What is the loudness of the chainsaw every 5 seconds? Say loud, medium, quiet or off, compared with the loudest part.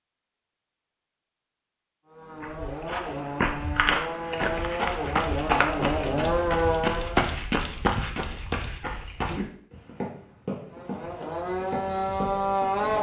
medium, loud, loud.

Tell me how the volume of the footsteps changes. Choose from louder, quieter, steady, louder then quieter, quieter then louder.
quieter.